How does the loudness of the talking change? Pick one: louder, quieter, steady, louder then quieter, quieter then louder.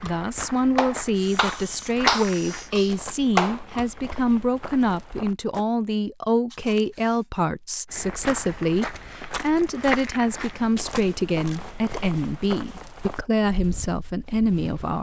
steady.